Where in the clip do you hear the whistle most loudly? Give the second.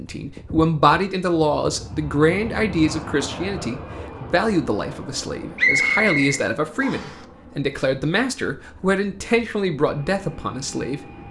6 s.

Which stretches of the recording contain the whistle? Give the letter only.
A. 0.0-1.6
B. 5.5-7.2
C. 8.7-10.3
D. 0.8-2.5
B.